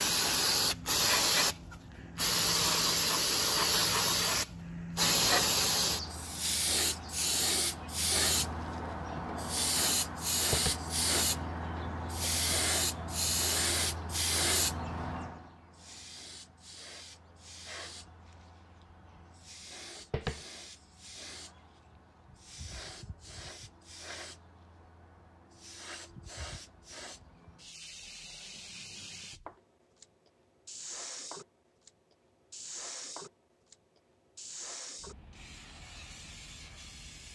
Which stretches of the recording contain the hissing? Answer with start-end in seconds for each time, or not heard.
0.0-37.3.